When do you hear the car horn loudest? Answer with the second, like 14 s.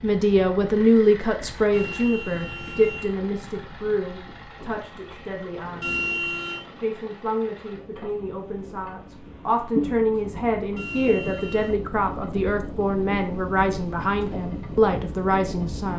6 s.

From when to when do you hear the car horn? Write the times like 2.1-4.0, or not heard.
1.7-3.1, 5.8-6.7, 10.8-11.8.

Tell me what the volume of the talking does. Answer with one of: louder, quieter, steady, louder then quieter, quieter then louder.
quieter then louder.